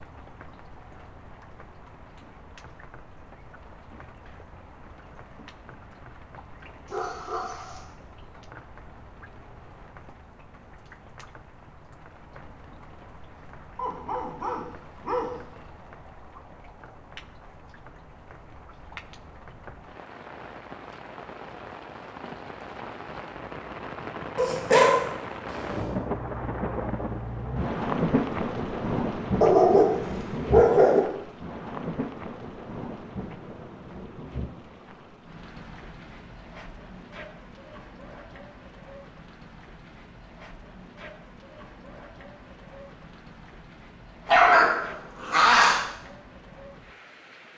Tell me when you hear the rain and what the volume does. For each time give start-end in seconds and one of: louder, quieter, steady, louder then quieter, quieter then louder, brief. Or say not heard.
0.0-47.5 louder then quieter.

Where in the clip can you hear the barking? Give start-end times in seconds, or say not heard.
6.8-7.8, 13.8-15.6, 24.4-25.9, 29.4-31.0, 44.2-45.8.